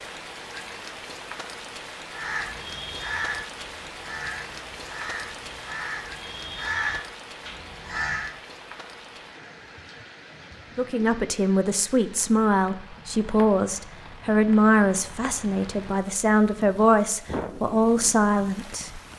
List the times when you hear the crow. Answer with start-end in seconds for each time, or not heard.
2.1-8.3.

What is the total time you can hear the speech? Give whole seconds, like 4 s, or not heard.
8 s.